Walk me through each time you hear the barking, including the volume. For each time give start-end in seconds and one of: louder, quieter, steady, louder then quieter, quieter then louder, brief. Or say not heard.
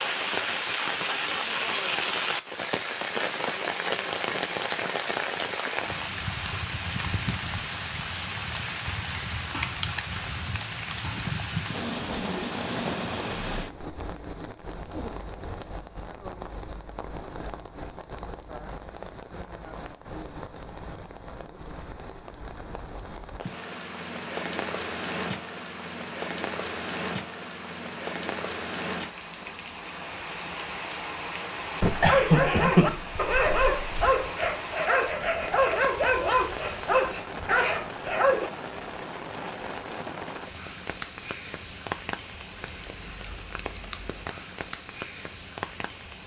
32.0-38.5 steady.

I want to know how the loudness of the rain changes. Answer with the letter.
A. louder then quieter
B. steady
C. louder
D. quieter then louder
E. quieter
E.